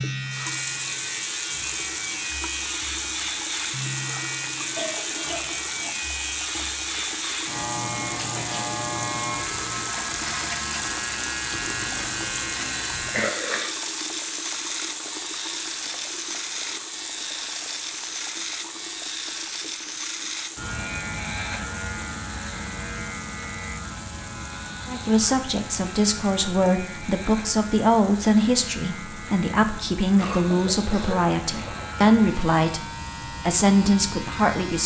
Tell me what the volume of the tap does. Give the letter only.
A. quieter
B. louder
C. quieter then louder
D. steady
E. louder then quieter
A.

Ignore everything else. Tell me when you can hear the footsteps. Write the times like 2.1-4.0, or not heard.
not heard.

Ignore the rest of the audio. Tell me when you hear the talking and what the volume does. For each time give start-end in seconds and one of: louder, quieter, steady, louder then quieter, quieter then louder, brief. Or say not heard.
24.9-34.8 steady.